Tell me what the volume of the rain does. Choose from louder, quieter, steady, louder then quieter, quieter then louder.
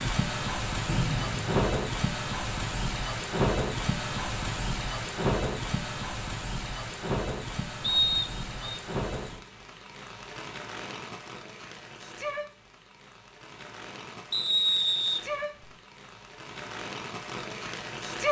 quieter.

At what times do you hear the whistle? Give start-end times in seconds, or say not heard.
0.8-1.6, 7.8-8.8, 14.3-15.7.